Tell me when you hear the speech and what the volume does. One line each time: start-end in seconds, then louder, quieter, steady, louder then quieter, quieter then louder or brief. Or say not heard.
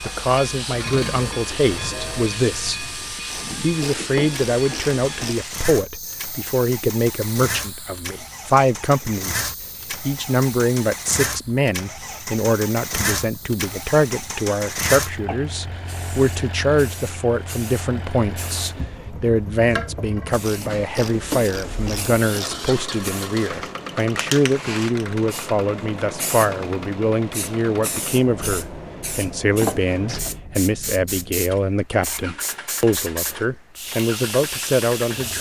0.0-2.9 brief
3.6-35.3 steady.